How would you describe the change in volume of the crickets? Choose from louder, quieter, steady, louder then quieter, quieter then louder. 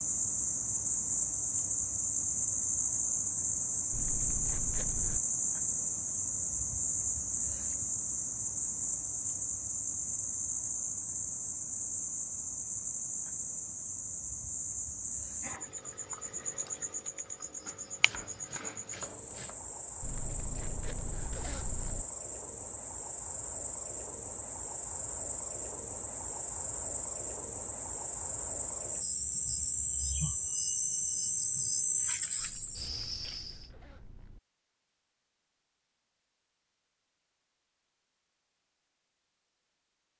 quieter then louder.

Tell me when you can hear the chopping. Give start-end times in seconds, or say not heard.
17.6-19.6.